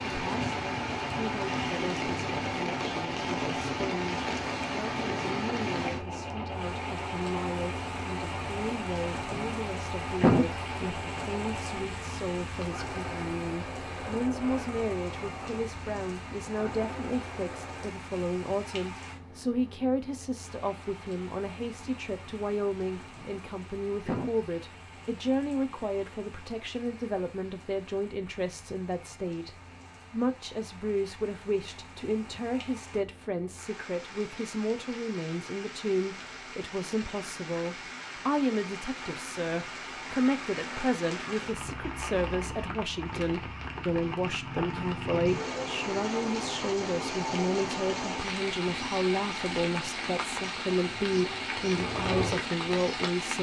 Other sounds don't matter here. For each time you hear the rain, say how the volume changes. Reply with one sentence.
The rain can be heard from 0.0 to 53.3 s, getting quieter then louder.